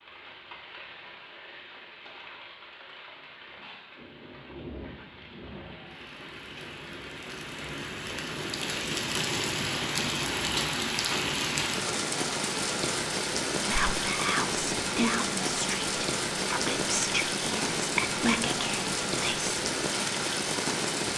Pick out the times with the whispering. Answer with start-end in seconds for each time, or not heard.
13.6-19.6.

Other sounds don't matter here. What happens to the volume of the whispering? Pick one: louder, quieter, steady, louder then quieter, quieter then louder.
steady.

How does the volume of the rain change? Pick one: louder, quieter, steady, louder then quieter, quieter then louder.
louder.